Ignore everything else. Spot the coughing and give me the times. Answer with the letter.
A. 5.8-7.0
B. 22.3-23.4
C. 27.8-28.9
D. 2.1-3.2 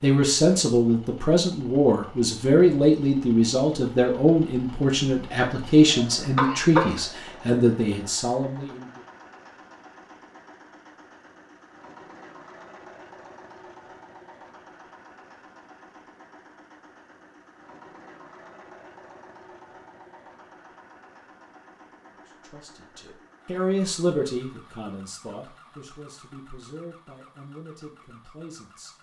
A.